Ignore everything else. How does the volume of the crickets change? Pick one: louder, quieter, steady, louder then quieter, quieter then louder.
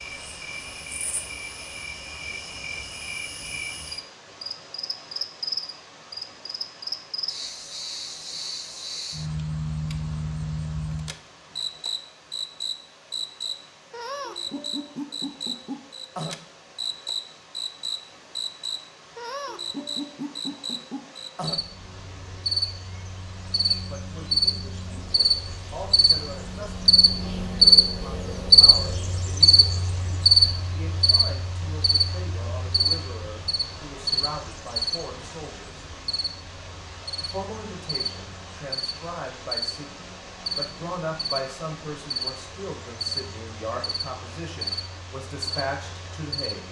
louder then quieter.